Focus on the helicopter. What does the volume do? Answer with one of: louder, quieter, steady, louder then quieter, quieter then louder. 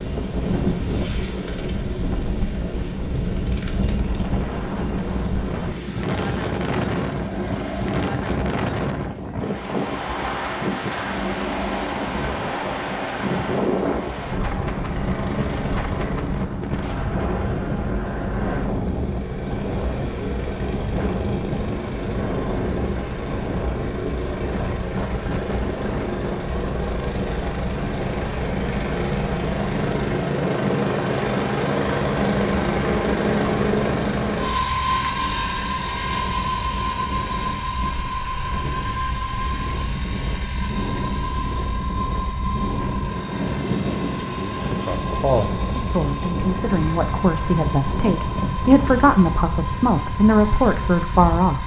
louder then quieter.